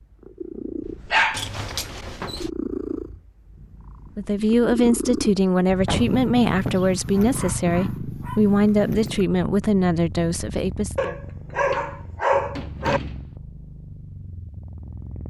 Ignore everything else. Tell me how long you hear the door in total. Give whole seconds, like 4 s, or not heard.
4 s.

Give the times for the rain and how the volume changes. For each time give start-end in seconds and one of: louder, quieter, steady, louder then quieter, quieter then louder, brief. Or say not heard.
not heard.